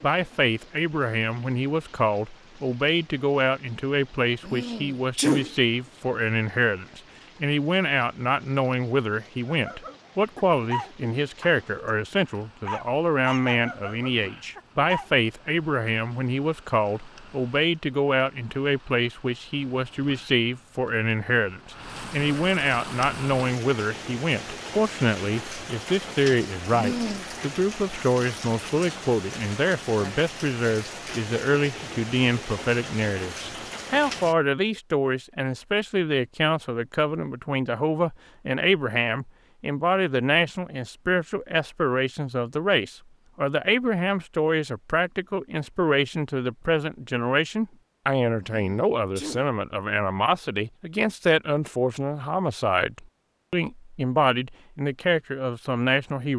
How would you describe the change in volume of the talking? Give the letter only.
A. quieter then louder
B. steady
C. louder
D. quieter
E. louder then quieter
B.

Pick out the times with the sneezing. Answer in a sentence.
You can hear the sneezing from 4.4 to 5.5 s, from 26.7 to 27.2 s and from 48.4 to 49.5 s.